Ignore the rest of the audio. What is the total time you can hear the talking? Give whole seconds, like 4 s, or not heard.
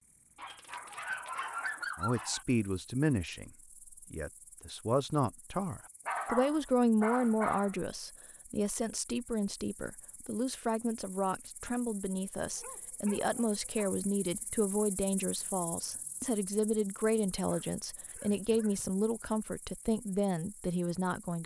19 s.